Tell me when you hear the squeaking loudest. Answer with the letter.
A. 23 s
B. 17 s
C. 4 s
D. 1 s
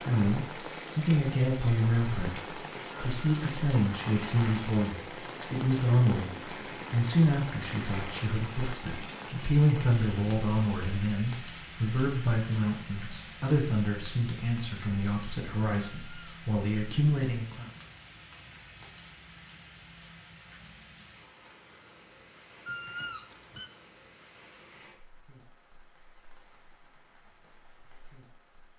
A.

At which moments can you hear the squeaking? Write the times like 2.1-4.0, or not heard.
2.9-3.5, 15.8-17.0, 22.6-23.7.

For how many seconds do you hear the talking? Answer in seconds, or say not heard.
18 s.